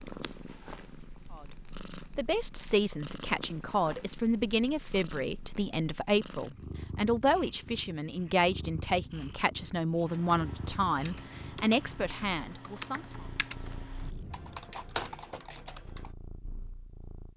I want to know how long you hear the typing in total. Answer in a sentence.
The typing can be heard for 6 seconds in total.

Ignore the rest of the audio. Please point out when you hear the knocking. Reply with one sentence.
The knocking can be heard from 14.0 to 14.8 s.